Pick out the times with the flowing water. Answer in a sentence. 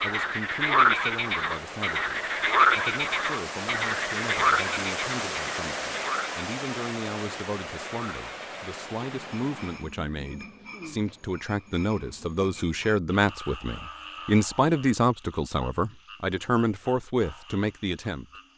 You can hear the flowing water from 0.0 to 9.9 s.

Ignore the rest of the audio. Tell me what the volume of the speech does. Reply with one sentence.
The volume of the speech goes up.